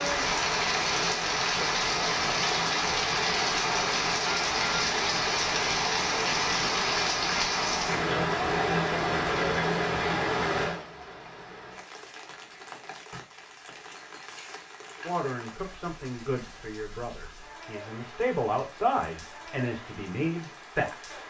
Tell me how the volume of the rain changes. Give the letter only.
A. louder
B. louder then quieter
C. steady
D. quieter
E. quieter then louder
D.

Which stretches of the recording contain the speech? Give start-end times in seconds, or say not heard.
15.0-21.1.